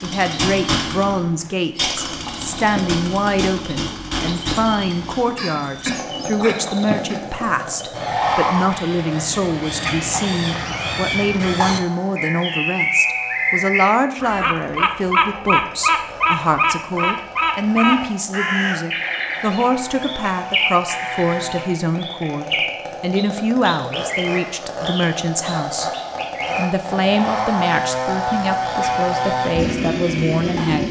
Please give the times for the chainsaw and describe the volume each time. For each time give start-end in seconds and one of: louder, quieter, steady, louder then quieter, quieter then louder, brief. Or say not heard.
0.0-30.8 quieter then louder.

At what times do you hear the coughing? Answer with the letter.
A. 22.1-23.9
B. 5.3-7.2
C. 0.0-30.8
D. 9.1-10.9
B.